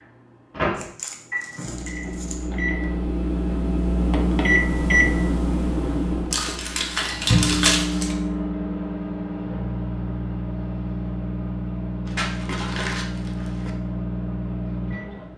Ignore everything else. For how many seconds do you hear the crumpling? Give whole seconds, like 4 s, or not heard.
5 s.